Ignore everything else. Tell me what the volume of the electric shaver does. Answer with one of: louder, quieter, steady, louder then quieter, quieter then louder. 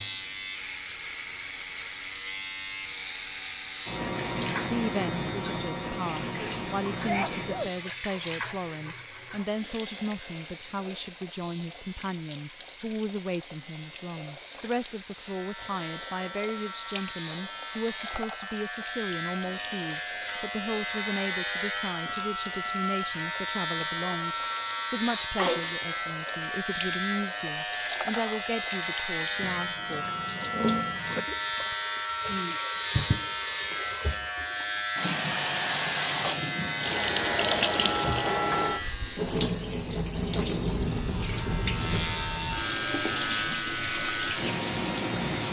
quieter then louder.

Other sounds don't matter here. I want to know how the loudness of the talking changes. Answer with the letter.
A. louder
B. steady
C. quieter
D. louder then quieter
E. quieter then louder
B.